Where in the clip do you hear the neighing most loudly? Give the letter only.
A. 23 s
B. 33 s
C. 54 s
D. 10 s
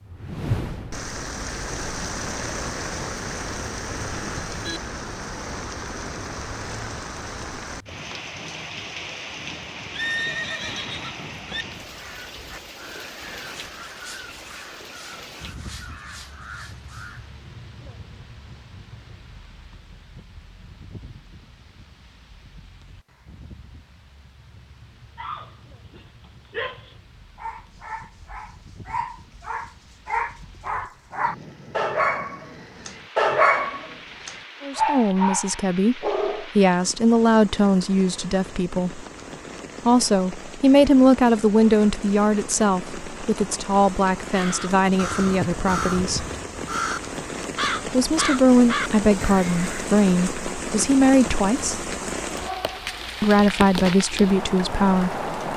D.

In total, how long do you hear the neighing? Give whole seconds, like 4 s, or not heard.
2 s.